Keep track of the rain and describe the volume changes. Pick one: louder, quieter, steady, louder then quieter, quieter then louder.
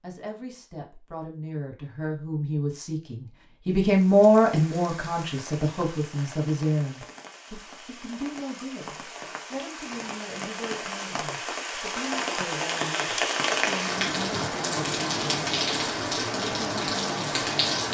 louder.